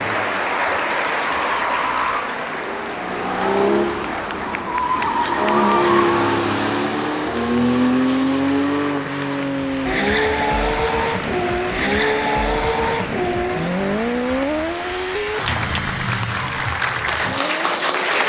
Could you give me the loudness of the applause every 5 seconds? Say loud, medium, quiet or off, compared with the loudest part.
loud, medium, medium, loud.